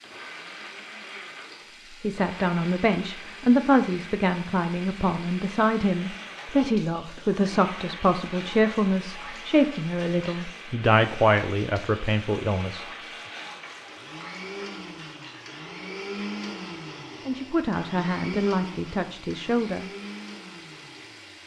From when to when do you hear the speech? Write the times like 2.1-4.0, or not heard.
2.0-12.8, 17.2-19.9.